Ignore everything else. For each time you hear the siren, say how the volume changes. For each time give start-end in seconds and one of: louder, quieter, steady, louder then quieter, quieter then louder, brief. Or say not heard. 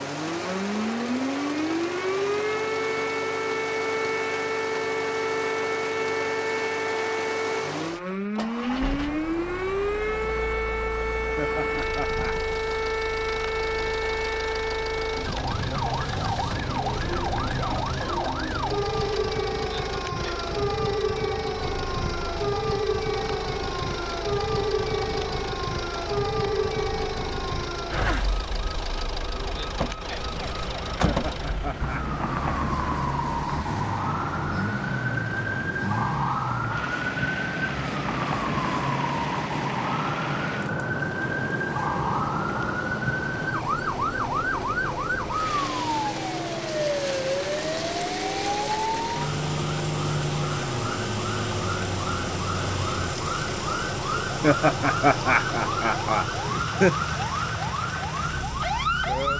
0.0-59.3 steady.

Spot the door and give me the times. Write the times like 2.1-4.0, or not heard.
not heard.